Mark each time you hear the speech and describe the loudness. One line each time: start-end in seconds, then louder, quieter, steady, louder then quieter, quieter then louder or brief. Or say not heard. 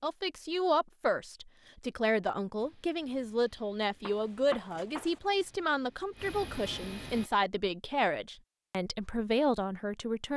0.0-10.3 steady.